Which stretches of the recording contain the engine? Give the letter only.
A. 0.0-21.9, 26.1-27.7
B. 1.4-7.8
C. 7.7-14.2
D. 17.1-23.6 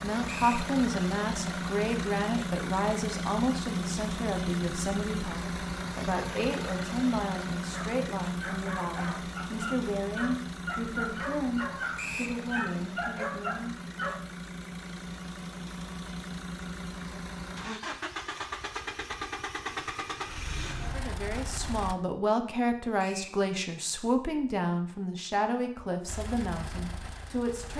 A.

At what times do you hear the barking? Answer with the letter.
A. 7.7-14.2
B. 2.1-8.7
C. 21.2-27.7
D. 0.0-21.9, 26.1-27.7
A.